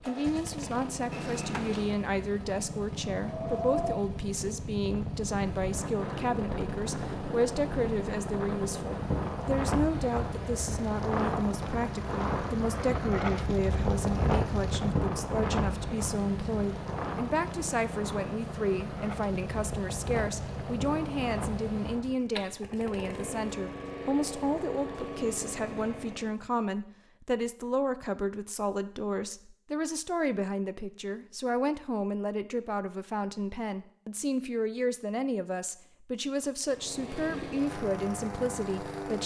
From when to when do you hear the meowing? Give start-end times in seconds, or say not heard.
1.1-2.0.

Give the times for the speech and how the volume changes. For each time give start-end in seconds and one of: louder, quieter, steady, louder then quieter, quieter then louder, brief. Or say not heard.
0.0-39.2 steady.